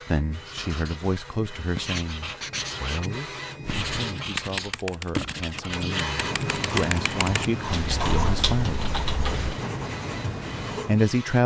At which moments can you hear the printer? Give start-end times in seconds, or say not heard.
0.0-4.2, 5.7-11.4.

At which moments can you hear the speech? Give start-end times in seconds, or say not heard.
0.1-8.9, 10.8-11.4.